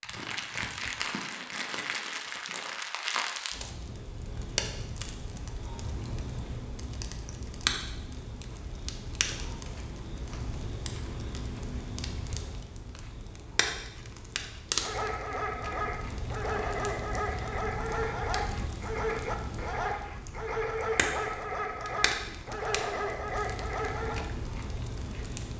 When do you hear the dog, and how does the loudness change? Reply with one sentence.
You can hear the dog from 14.8 to 24.2 s, at a steady volume.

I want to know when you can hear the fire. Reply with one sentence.
You can hear the fire from 0.0 to 25.5 s.